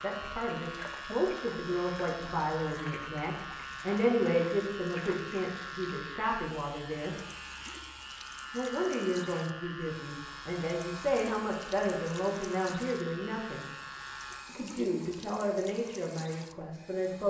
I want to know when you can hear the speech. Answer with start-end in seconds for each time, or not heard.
0.0-7.2, 8.5-13.7, 14.4-17.2.